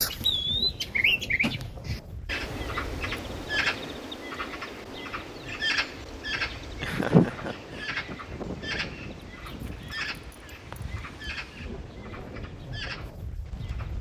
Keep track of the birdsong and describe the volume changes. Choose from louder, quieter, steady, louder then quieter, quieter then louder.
quieter.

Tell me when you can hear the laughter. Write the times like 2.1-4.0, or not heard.
6.8-7.5.